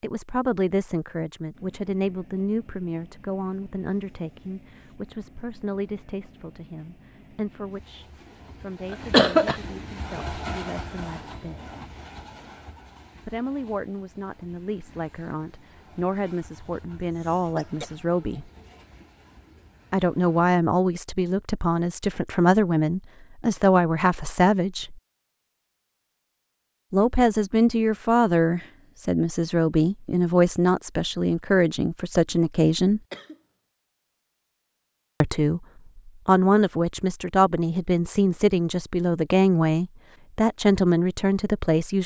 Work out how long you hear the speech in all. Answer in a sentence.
You can hear the speech for 35 seconds altogether.